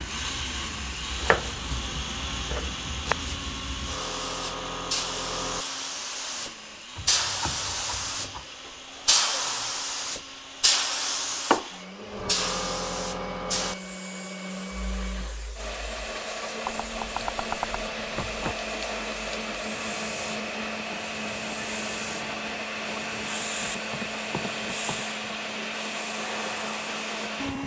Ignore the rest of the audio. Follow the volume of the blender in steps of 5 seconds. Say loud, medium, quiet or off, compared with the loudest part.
loud, medium, medium, loud, loud, loud.